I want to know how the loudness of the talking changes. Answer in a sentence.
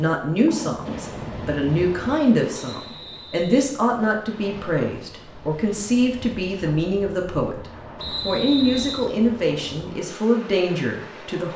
The loudness of the talking stays about the same.